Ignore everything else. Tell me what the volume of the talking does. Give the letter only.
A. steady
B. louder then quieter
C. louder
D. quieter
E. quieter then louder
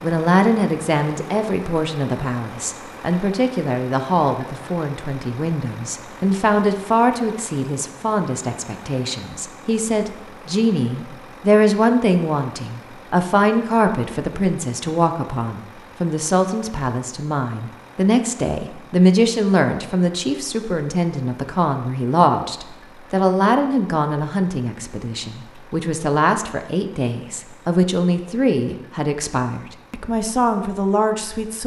A.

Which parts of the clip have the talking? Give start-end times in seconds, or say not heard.
0.0-31.6.